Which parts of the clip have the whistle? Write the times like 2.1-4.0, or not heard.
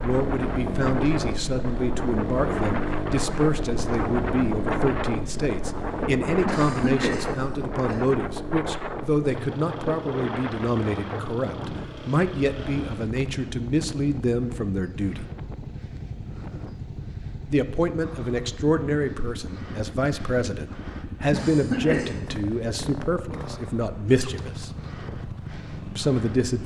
not heard.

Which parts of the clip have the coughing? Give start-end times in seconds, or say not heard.
6.5-8.0, 21.3-22.4.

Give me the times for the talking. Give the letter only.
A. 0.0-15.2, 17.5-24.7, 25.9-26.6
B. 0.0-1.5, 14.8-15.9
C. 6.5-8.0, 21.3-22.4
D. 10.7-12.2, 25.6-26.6
A.